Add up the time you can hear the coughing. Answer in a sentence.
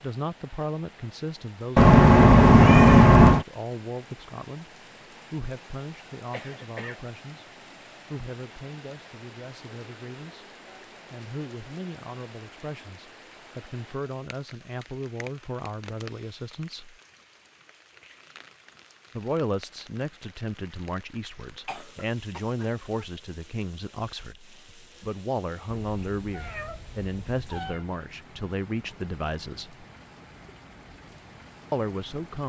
The coughing can be heard for 2 seconds in total.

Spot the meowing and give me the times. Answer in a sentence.
You can hear the meowing from 1.8 to 3.5 s and from 25.8 to 27.9 s.